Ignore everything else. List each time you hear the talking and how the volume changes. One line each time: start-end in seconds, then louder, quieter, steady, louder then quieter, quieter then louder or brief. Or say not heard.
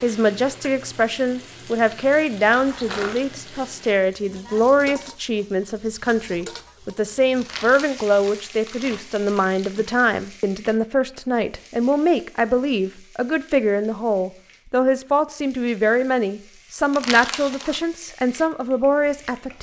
0.0-19.5 steady.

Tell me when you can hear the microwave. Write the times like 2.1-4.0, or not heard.
not heard.